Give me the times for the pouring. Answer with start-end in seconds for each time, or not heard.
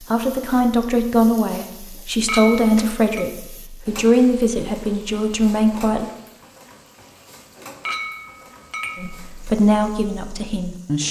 not heard.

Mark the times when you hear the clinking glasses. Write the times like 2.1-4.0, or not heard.
2.2-3.2, 7.8-9.2.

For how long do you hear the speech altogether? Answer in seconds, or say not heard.
8 s.